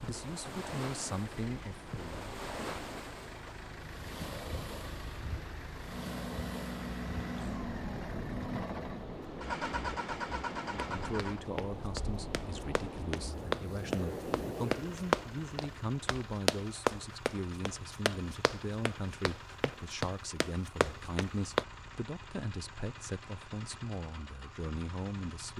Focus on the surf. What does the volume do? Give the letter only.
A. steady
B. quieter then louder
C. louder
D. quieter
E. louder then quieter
A.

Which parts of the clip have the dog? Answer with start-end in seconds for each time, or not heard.
not heard.